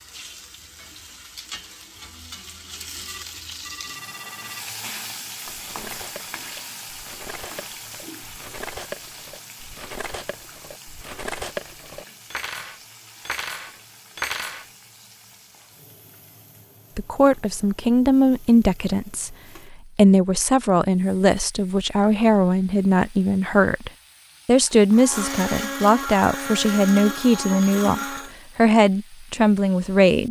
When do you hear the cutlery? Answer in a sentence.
You can hear the cutlery from 5.5 to 14.7 s.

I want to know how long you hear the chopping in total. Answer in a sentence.
You can't hear the chopping here.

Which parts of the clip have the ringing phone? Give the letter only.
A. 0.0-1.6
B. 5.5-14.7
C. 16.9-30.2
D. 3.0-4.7
D.